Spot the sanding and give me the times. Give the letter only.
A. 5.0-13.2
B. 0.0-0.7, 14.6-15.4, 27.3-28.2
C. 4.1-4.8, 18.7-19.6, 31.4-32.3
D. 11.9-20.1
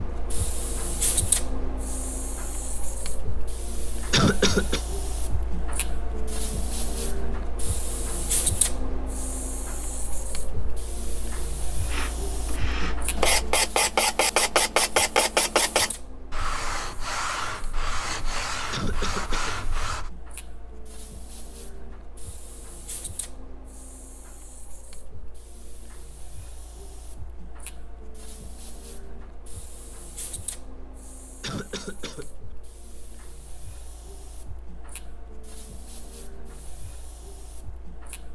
D.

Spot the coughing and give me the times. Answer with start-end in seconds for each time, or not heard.
4.1-4.8, 18.7-19.6, 31.4-32.3.